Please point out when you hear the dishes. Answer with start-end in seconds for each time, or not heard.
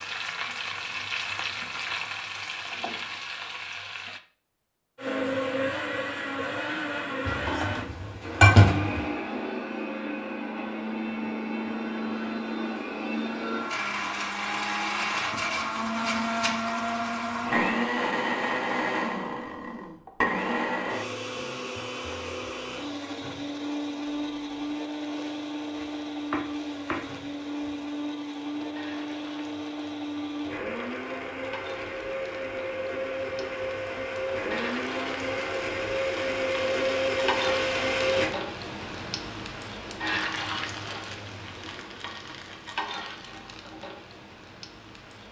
7.2-9.1.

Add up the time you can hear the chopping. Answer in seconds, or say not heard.
2 s.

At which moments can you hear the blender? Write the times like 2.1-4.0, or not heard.
5.0-38.4.